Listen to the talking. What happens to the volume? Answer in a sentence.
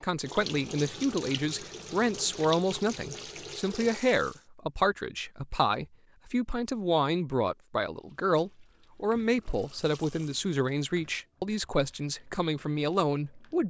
The loudness of the talking stays about the same.